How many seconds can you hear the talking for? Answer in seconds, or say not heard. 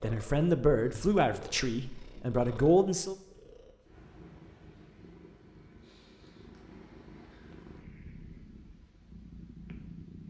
3 s.